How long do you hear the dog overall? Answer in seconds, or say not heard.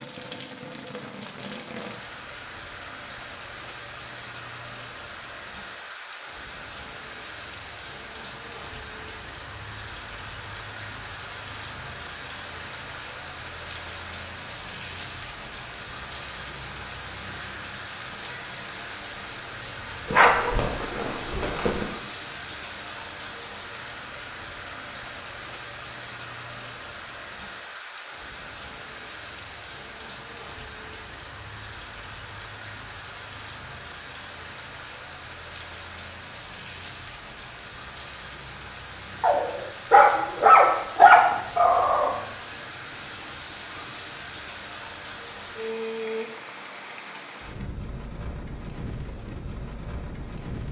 5 s.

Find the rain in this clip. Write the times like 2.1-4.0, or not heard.
0.0-50.6.